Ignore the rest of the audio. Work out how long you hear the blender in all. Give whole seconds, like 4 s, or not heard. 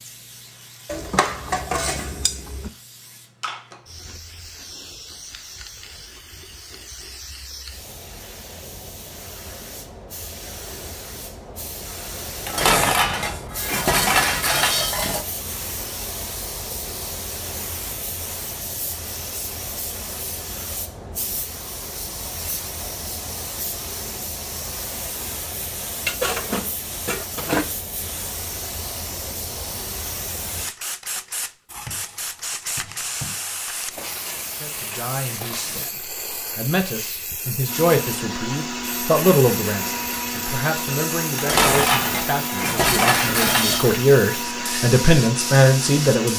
9 s.